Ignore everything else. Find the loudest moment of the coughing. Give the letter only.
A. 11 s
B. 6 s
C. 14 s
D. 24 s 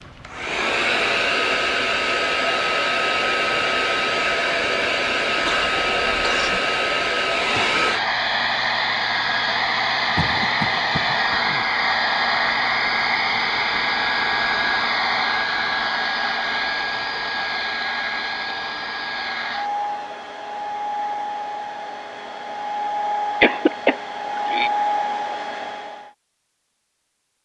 D.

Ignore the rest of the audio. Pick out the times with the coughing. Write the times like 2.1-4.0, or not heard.
5.4-6.6, 10.2-11.7, 23.4-24.7.